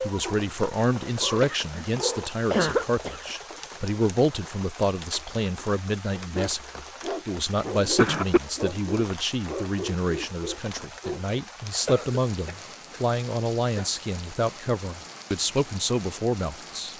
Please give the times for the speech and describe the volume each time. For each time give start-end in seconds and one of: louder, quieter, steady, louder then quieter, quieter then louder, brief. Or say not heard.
0.0-16.9 steady.